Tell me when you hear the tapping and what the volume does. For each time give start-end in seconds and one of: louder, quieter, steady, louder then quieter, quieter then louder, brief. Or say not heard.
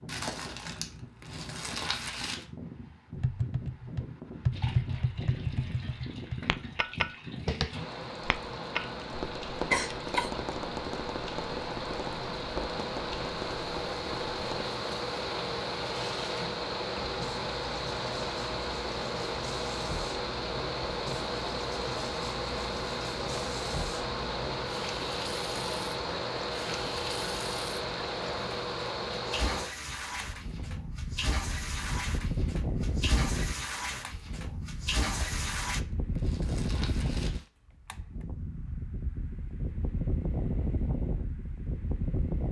3.1-14.7 quieter.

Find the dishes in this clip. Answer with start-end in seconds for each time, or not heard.
not heard.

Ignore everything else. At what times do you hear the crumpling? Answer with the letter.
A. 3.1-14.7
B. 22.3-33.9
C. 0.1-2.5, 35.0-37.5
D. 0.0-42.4
C.